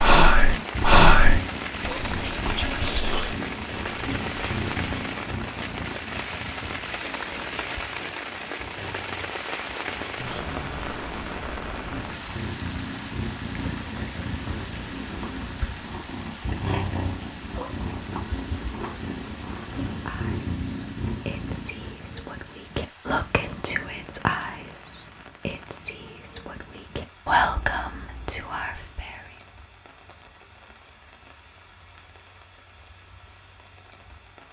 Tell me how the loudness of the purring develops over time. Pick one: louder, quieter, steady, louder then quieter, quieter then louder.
quieter then louder.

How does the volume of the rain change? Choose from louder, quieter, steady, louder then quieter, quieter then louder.
quieter.